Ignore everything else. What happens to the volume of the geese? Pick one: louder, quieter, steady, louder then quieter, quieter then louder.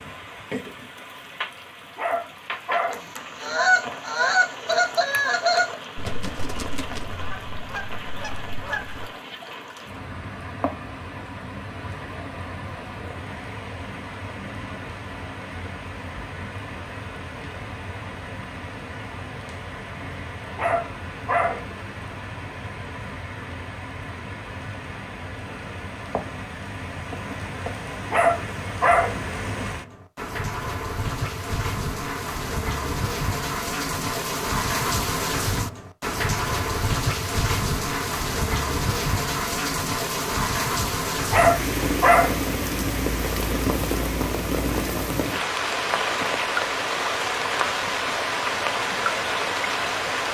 quieter.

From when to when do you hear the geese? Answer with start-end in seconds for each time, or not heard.
2.9-9.1.